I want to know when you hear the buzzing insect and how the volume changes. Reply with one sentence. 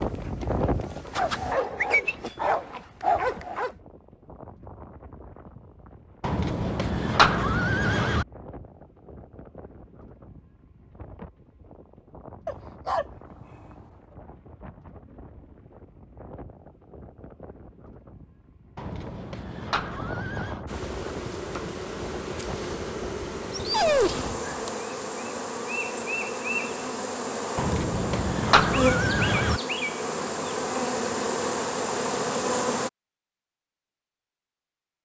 You can hear the buzzing insect briefly from 0.0 to 1.6 s; and from 20.6 to 32.9 s, getting louder.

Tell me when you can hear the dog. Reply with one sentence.
The dog can be heard from 1.1 to 3.7 s, from 12.4 to 13.1 s and from 23.5 to 24.4 s.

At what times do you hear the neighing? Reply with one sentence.
The neighing can be heard from 6.2 to 8.2 s, from 18.8 to 20.6 s and from 27.6 to 29.6 s.